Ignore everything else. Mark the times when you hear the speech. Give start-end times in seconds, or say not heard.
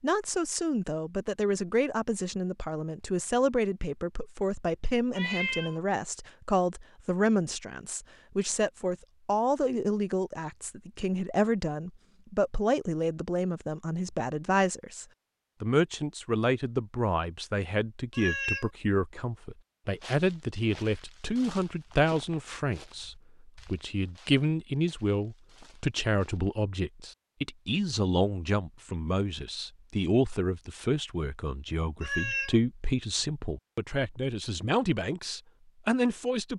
0.0-36.5.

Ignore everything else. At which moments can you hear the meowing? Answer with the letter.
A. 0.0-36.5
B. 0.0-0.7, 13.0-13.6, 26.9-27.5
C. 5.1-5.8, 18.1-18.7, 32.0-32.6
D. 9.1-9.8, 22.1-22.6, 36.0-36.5
C.